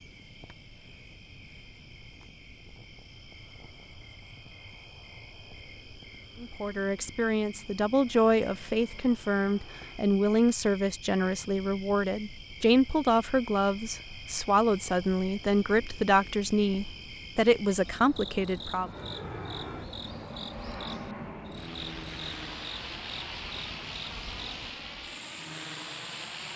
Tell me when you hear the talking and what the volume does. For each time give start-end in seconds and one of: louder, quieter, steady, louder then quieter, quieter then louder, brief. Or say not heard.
6.4-18.9 steady.